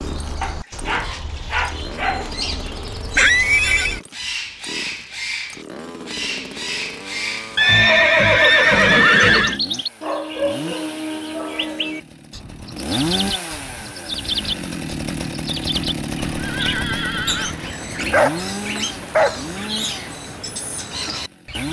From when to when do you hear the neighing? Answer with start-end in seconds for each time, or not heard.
3.1-4.0, 7.5-9.6, 16.3-17.6.